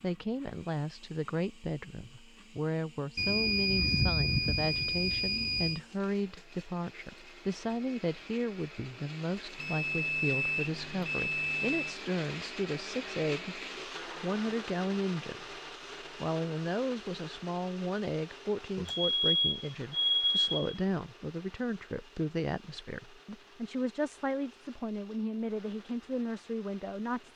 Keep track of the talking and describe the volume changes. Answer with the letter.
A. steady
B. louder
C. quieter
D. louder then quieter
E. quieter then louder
A.